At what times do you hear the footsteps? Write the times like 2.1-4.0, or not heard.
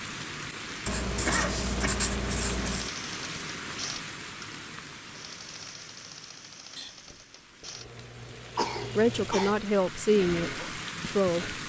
not heard.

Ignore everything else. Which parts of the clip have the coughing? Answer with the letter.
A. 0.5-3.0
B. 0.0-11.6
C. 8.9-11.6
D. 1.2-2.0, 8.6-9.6
D.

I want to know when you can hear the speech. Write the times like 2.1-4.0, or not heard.
8.9-11.6.